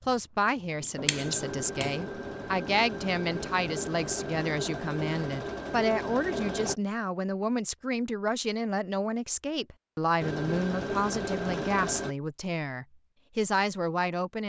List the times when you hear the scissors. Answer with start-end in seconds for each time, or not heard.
0.8-2.0.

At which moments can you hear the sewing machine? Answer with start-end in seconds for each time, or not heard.
0.0-6.8, 10.2-12.2.